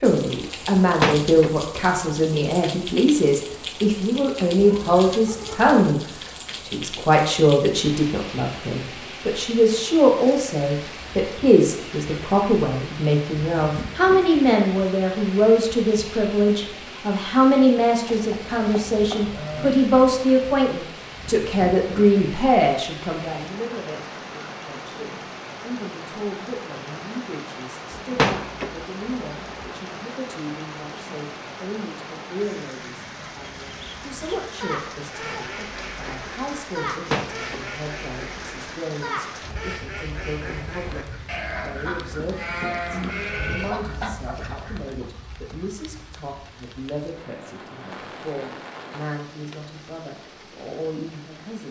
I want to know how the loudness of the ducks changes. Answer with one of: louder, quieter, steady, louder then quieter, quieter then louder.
steady.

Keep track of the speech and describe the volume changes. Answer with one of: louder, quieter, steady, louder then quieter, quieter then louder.
quieter.